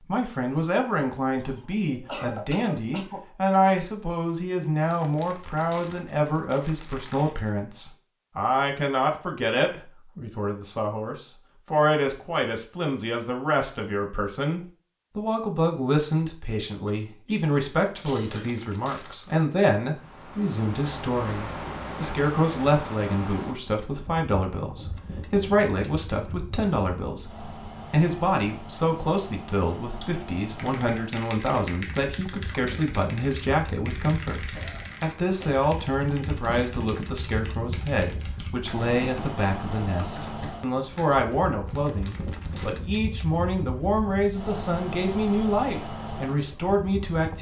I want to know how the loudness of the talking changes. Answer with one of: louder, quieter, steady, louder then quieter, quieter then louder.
steady.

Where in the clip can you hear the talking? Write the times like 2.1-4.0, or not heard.
0.1-47.3.